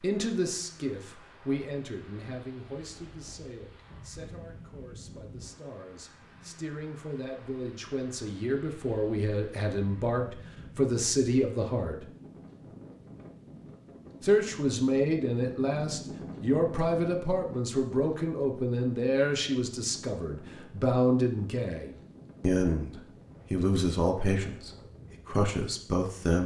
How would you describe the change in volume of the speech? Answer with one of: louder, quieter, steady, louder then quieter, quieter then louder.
louder.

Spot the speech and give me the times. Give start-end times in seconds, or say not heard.
0.0-12.1, 14.2-26.4.